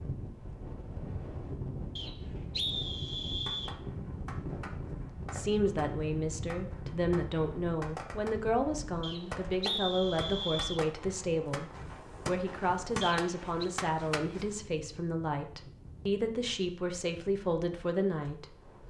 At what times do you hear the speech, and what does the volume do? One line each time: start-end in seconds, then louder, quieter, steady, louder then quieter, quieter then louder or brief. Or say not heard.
5.2-18.8 steady.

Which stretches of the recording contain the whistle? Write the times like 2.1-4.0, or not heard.
1.9-3.8, 9.0-10.8, 13.0-13.7.